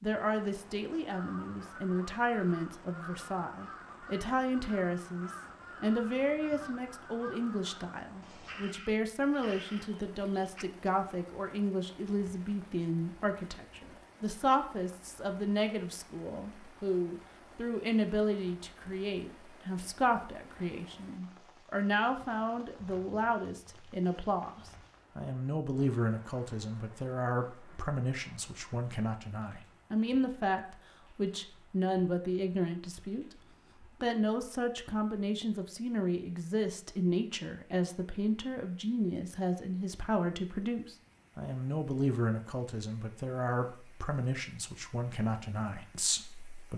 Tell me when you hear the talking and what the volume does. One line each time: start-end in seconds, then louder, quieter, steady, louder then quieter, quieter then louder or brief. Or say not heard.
0.0-33.2 steady
34.0-46.7 steady.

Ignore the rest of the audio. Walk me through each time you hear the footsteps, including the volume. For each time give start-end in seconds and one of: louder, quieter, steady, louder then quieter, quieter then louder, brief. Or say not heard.
not heard.